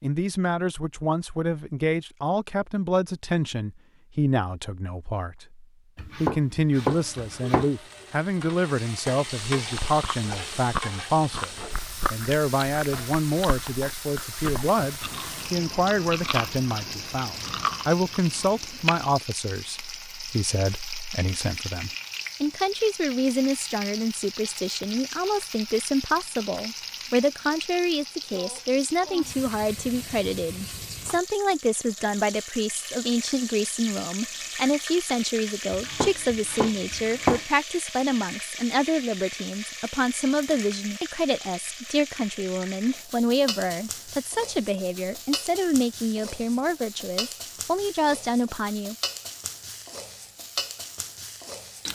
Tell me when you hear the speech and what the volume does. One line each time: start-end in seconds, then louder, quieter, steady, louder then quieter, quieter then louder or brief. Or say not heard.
0.0-49.0 steady.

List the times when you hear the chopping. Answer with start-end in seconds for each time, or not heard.
6.0-7.7, 35.7-37.4.